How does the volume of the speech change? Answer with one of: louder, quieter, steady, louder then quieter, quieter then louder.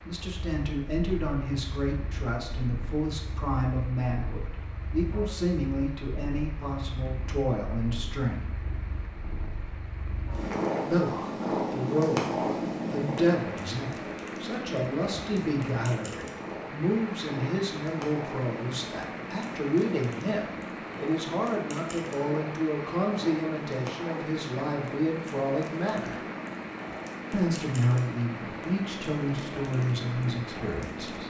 steady.